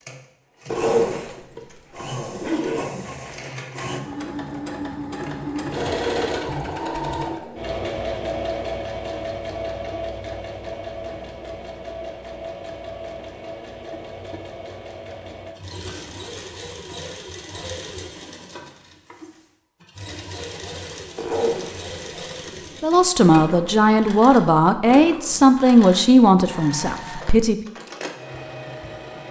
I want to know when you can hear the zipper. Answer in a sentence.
The zipper can be heard from 0.7 to 2.9 s and from 21.1 to 22.8 s.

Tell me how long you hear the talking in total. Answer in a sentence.
You can hear the talking for 5 seconds altogether.